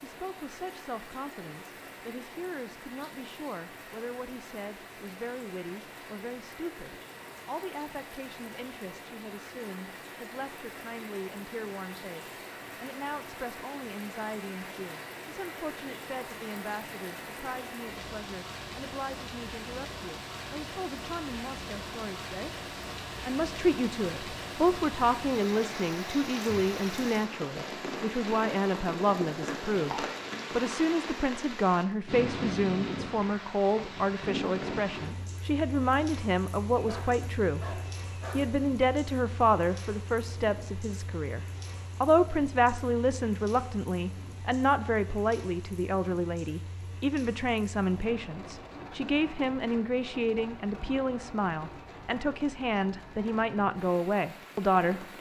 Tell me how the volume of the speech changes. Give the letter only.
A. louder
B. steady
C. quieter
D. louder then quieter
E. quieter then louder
A.